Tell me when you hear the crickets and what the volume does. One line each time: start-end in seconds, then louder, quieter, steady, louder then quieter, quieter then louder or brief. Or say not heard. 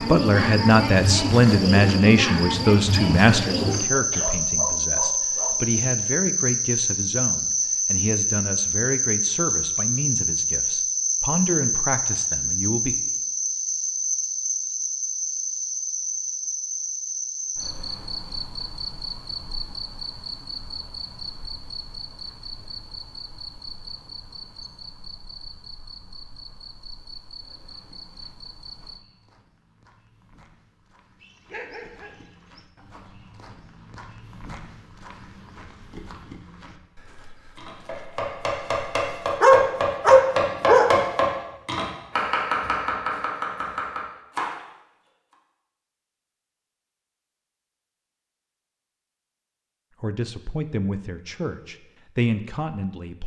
0.0-29.0 quieter.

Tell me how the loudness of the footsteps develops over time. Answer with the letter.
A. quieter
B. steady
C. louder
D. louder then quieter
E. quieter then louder
C.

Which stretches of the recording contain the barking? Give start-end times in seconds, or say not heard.
3.9-5.9, 31.2-32.6, 39.4-40.9.